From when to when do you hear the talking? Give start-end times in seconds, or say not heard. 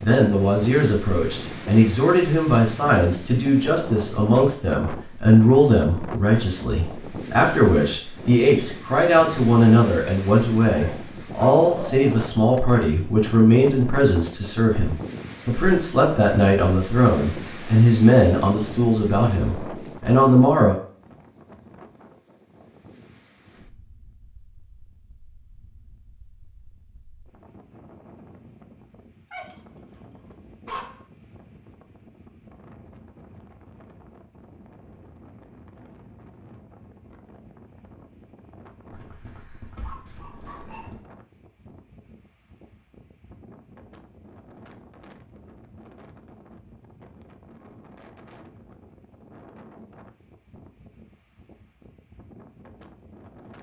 0.0-20.8.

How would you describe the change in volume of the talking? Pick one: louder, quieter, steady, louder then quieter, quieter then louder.
steady.